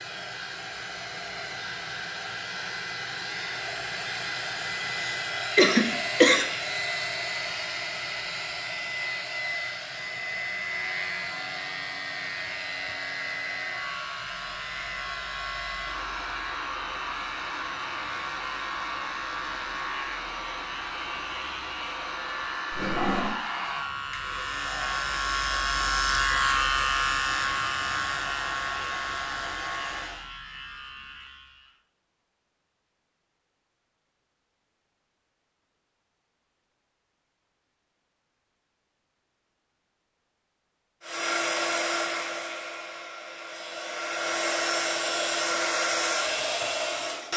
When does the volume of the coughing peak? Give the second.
6 s.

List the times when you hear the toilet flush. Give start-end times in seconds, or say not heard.
22.7-23.4.